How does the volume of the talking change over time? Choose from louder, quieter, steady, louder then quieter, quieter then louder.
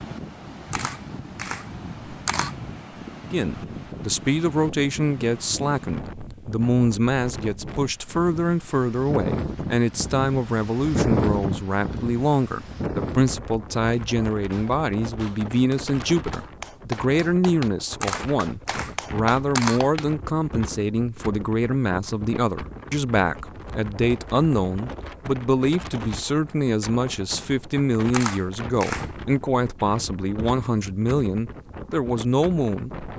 steady.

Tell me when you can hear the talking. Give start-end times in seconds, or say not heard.
3.2-32.9.